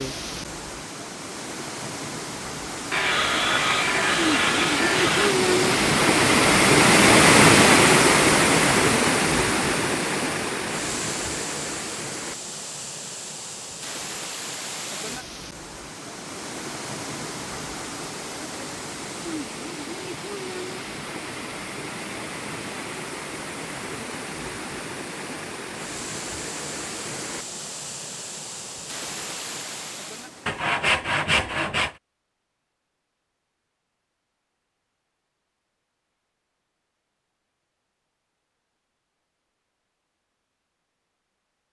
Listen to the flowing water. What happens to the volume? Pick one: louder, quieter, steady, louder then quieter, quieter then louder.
louder then quieter.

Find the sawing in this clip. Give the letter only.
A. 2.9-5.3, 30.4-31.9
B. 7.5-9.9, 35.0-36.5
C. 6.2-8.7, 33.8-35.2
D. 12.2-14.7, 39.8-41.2
A.